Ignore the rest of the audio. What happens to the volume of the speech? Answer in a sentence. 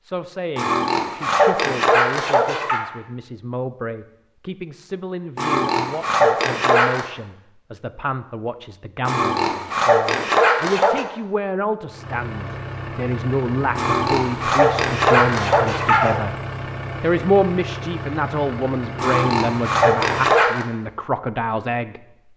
The volume of the speech goes up.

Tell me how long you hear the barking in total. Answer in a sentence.
You can hear the barking for 10 seconds altogether.